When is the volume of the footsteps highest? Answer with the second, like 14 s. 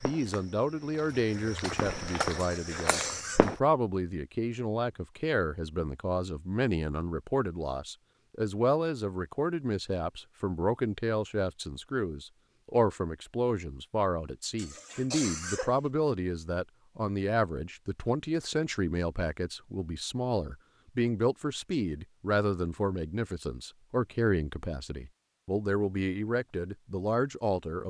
2 s.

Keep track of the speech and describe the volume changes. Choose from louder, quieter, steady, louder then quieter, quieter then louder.
steady.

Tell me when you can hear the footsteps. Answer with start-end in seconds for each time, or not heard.
0.0-3.5.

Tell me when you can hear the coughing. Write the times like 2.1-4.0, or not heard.
2.4-3.5, 14.6-15.8.